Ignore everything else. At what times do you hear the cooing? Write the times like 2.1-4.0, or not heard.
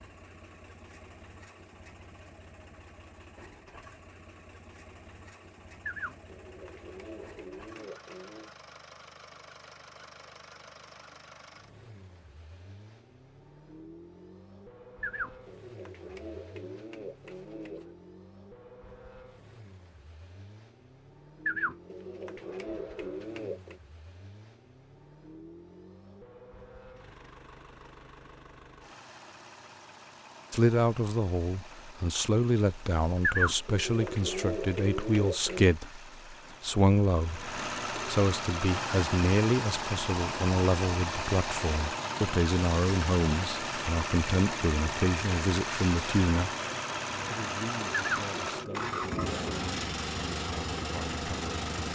5.8-8.5, 15.0-17.9, 21.4-23.8, 33.2-35.7, 48.0-49.6.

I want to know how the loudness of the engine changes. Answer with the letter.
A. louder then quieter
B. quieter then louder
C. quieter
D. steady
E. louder
E.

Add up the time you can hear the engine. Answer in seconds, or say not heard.
52 s.